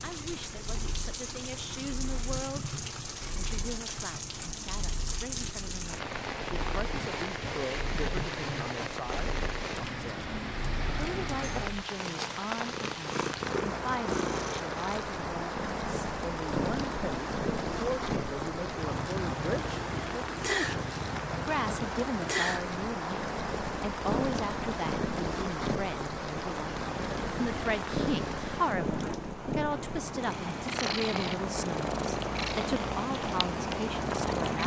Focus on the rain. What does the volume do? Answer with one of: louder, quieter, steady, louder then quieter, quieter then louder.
steady.